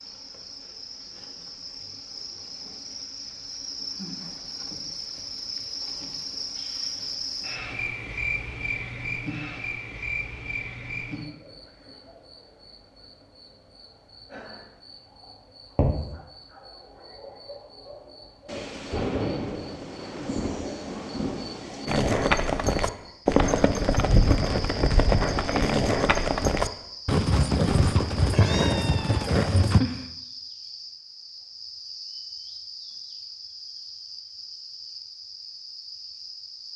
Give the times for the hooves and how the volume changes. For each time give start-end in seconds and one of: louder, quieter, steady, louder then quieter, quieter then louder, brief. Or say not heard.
21.9-29.8 steady.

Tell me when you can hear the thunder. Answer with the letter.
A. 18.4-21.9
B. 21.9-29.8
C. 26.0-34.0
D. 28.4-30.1
A.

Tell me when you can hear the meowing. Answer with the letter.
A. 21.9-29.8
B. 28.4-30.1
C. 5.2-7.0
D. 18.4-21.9
B.